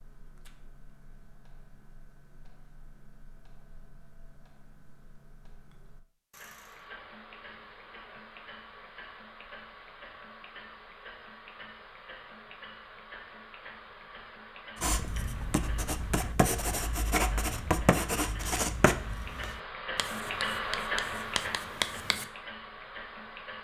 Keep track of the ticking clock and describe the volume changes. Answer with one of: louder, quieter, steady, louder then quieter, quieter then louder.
louder.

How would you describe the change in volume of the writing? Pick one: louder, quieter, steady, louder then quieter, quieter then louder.
quieter then louder.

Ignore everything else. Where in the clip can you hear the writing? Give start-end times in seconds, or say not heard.
14.8-22.2.